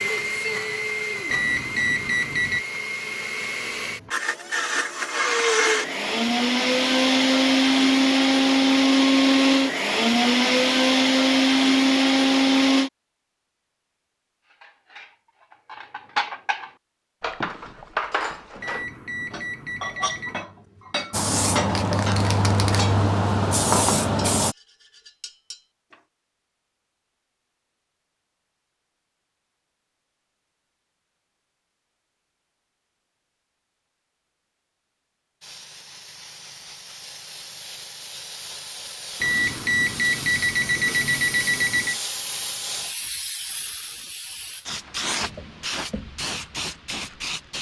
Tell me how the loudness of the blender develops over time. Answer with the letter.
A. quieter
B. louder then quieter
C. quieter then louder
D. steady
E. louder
E.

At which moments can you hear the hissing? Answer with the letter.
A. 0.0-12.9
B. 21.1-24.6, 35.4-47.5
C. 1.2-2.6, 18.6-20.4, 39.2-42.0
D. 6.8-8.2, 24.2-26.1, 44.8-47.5
B.